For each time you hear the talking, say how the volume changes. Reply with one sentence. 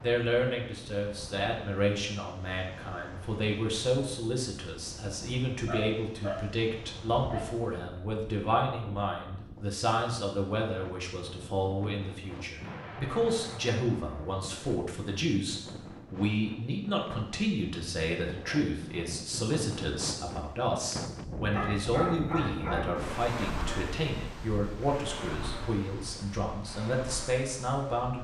You can hear the talking from 0.0 to 28.1 s, at a steady volume.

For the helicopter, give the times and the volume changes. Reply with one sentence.
The helicopter can't be heard in this clip.